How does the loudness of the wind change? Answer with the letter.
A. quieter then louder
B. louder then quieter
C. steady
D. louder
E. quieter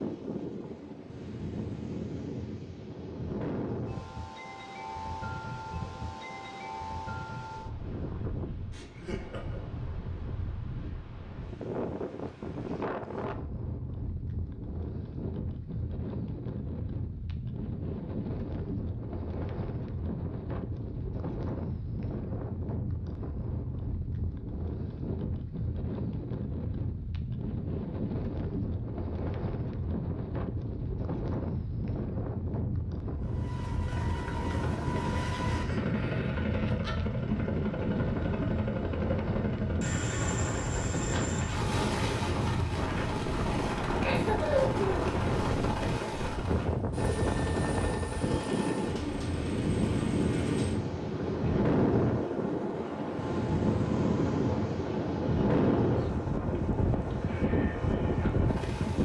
D.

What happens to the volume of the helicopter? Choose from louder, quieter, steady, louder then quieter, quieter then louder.
steady.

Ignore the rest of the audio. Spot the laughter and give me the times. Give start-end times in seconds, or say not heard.
8.7-9.7, 35.3-36.9, 44.0-45.1.